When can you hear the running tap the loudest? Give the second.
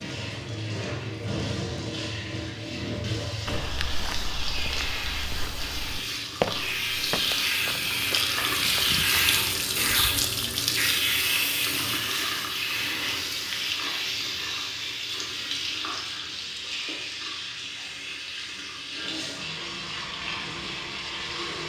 9 s.